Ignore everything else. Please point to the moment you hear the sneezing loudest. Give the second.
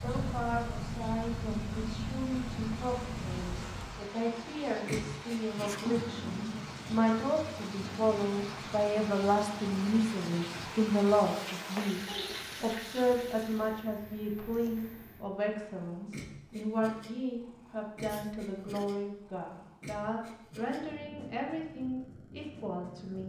6 s.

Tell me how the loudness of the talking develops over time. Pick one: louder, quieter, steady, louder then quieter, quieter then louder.
louder then quieter.